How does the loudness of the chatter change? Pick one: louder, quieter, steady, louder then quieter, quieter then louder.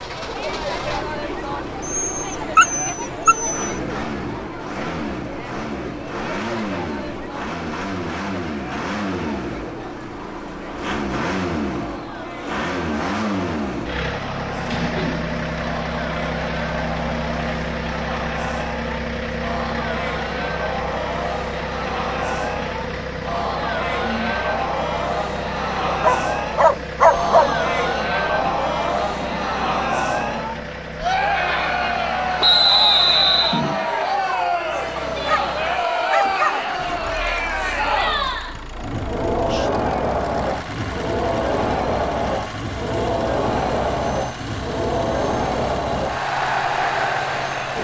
louder.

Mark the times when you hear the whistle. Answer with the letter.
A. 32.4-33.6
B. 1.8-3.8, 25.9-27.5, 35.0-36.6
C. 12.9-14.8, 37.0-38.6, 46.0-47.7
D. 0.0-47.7
A.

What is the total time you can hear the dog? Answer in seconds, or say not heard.
5 s.